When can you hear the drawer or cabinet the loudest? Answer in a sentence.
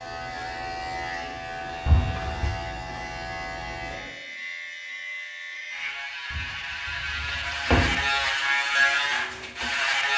The volume of the drawer or cabinet peaks at 8 seconds.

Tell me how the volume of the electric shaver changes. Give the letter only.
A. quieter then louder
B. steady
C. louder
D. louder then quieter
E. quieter
C.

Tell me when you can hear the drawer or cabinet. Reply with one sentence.
You can hear the drawer or cabinet from 1.9 to 2.5 s and from 6.3 to 8.2 s.